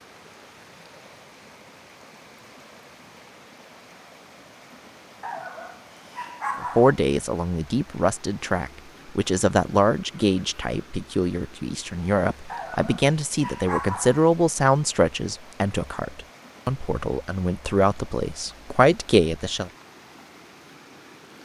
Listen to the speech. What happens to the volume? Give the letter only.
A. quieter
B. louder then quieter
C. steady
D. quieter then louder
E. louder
C.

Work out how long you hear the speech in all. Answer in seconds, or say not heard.
13 s.